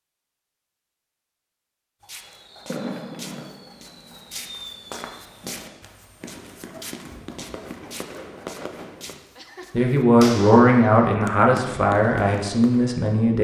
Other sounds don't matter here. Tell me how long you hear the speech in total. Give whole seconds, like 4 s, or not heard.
4 s.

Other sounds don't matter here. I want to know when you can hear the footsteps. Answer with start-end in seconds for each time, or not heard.
2.0-10.1.